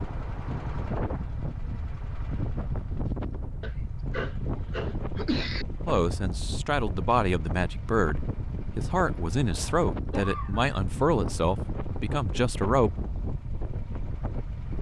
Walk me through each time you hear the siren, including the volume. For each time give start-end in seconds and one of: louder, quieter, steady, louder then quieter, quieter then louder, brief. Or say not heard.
not heard.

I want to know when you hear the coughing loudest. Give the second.
5 s.